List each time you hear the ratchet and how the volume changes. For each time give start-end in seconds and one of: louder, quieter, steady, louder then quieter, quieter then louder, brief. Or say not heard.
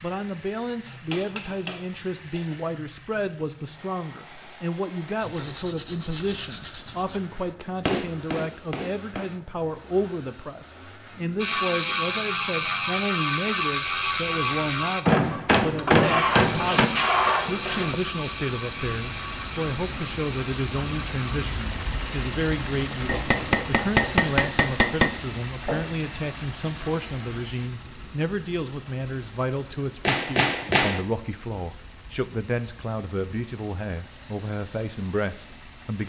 11.3-21.4 quieter.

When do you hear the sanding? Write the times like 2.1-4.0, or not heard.
5.2-7.2, 16.0-18.0, 25.6-27.5.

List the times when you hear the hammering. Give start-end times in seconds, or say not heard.
0.8-2.5, 7.8-9.3, 15.1-16.9, 23.1-25.1, 30.1-31.0.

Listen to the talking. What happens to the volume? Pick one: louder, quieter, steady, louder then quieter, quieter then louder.
steady.